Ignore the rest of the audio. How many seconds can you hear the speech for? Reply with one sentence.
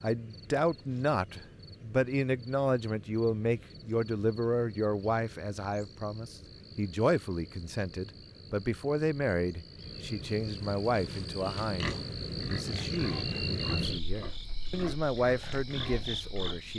The speech can be heard for 17 seconds in total.